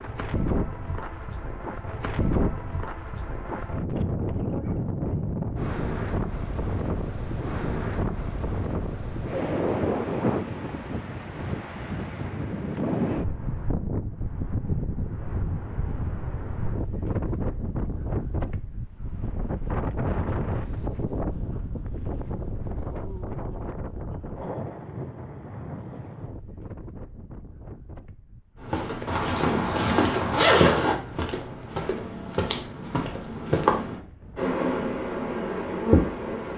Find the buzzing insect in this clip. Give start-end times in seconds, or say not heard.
34.4-36.5.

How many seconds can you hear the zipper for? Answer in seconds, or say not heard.
2 s.